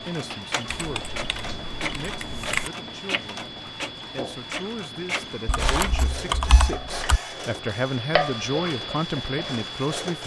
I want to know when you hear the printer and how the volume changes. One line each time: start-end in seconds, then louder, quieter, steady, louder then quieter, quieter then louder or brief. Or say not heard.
0.0-10.2 quieter.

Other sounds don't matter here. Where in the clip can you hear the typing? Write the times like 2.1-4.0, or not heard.
0.7-2.7, 5.5-7.2.